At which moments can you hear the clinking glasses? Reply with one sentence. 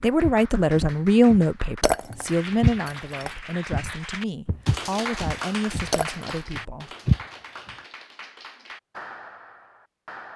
The clinking glasses can be heard from 1.8 to 3.3 s and from 5.9 to 6.4 s.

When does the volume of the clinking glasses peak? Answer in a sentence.
The volume of the clinking glasses peaks at 2 seconds.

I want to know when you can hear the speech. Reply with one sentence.
You can hear the speech from 0.0 to 6.9 s.